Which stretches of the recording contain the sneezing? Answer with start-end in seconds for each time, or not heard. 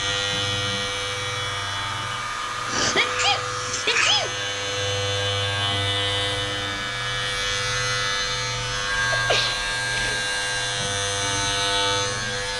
2.6-4.3, 9.1-10.2.